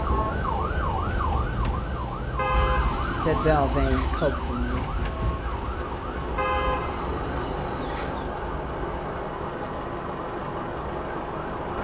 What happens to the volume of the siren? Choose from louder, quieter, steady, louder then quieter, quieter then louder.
quieter.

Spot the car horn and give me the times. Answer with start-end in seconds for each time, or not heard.
2.4-4.3, 6.3-8.3.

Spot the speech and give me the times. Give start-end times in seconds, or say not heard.
3.2-4.9.